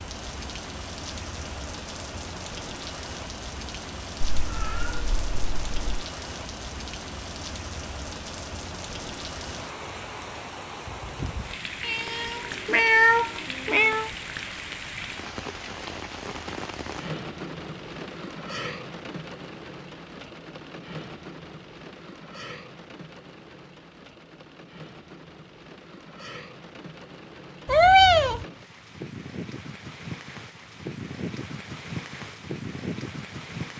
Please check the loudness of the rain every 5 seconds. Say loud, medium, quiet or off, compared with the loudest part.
loud, loud, loud, loud, medium, medium, loud.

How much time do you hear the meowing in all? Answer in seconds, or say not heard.
5 s.